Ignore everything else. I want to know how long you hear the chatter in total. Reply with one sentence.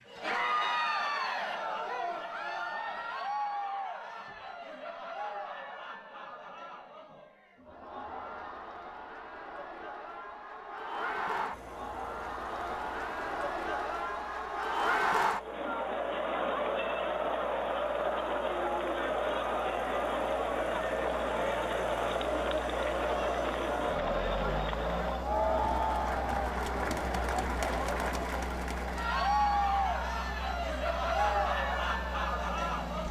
The chatter can be heard for 33 seconds in total.